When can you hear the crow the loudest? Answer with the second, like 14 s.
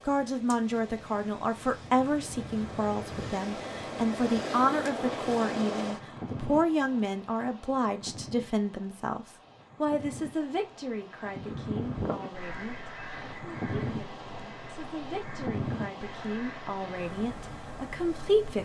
12 s.